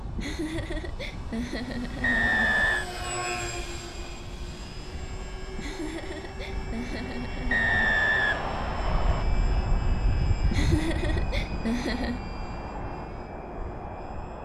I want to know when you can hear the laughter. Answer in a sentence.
You can hear the laughter from 0.1 to 2.6 s, from 5.5 to 7.8 s and from 10.5 to 12.2 s.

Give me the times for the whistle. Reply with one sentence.
The whistle can be heard from 2.0 to 2.9 s and from 7.5 to 9.2 s.